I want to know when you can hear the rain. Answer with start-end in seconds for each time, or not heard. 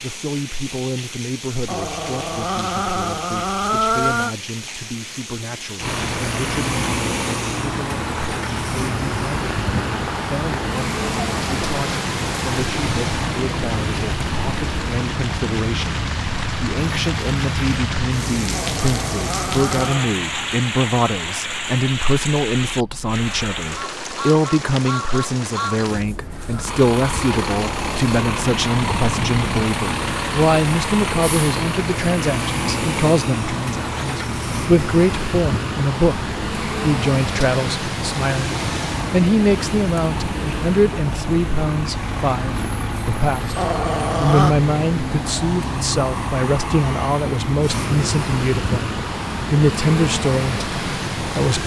0.0-26.1.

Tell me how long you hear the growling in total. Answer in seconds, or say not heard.
5 s.